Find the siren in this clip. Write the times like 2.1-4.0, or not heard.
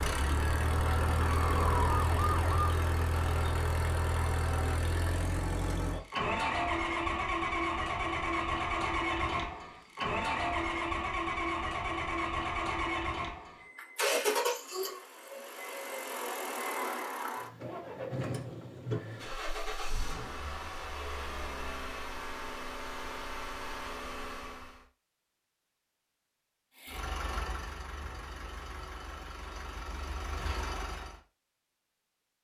0.0-2.7.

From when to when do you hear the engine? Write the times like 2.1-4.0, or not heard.
0.0-24.9, 26.8-31.2.